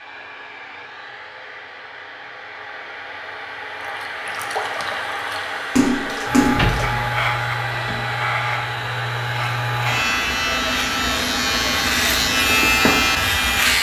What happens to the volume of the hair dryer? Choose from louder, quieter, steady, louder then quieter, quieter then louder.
louder.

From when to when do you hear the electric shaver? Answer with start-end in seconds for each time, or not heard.
6.2-13.7.